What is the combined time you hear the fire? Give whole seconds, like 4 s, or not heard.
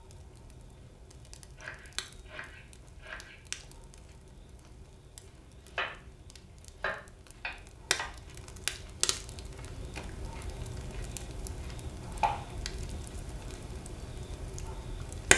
15 s.